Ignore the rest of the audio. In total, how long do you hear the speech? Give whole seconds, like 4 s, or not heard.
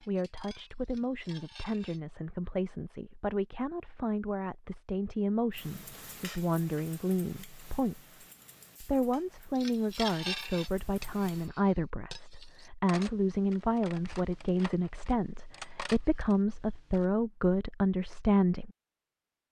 19 s.